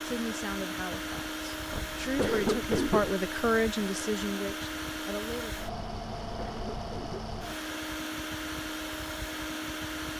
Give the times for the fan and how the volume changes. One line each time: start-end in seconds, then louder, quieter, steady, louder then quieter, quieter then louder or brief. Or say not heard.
0.0-10.1 steady.